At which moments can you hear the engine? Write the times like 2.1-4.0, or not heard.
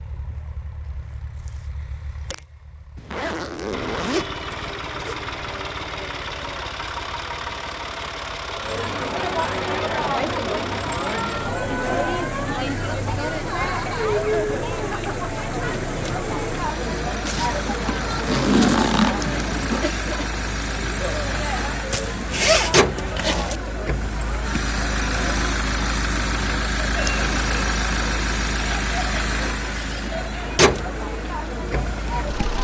0.0-32.5.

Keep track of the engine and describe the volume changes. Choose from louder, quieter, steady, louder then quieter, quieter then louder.
louder.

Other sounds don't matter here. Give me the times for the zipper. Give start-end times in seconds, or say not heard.
3.0-5.2, 17.2-19.9, 21.9-23.6.